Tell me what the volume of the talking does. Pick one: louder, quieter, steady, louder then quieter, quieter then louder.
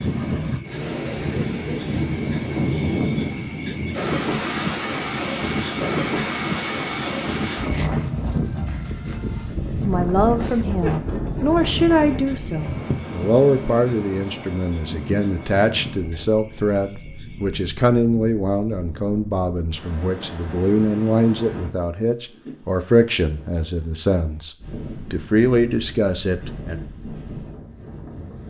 steady.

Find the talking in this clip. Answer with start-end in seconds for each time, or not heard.
9.8-26.8.